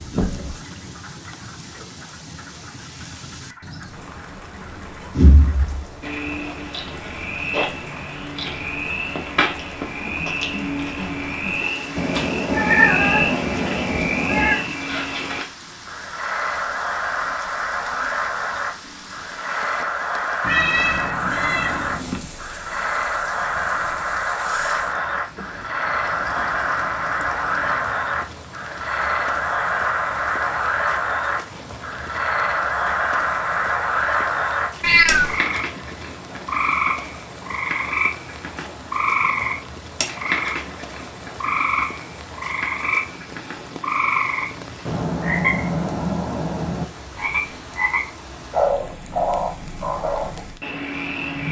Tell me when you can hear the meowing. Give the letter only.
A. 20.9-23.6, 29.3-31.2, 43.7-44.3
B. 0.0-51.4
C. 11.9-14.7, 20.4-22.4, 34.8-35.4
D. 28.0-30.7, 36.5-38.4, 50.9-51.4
C.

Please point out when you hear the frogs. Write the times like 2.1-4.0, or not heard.
0.0-51.4.